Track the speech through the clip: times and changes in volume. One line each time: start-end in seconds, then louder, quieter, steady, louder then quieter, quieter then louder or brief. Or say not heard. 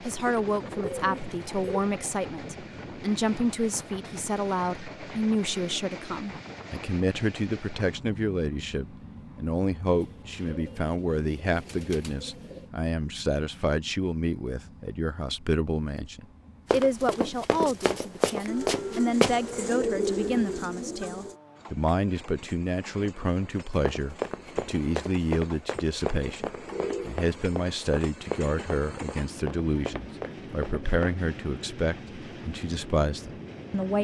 0.0-33.9 steady.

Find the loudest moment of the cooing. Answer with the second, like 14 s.
20 s.